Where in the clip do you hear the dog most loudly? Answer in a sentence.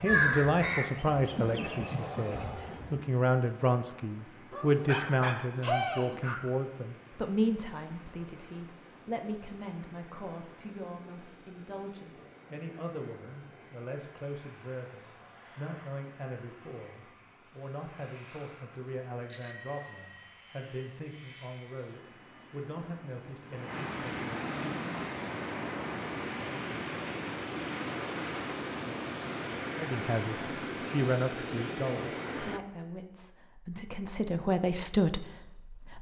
The loudest moment of the dog is at 6 seconds.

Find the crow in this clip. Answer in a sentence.
You can hear the crow from 0.0 to 3.0 s.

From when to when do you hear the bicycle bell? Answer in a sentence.
The bicycle bell can be heard from 19.3 to 20.3 s.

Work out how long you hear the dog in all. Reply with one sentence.
The dog can be heard for 2 seconds in total.